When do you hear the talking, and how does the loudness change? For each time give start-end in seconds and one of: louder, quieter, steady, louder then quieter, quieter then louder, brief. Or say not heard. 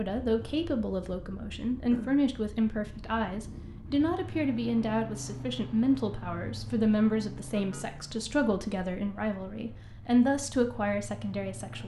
0.0-11.8 steady.